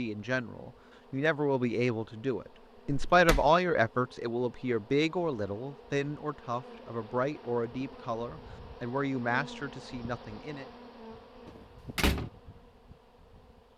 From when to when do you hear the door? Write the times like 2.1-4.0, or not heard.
2.9-3.5, 11.4-12.3.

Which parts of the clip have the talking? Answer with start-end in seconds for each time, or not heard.
0.0-10.7.